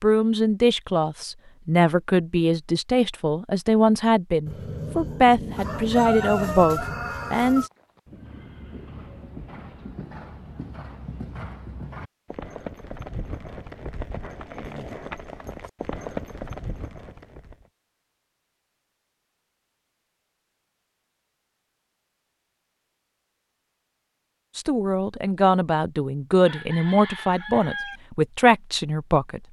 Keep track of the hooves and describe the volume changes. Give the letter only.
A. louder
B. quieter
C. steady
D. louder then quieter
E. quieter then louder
A.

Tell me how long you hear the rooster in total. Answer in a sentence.
You can hear the rooster for 5 seconds altogether.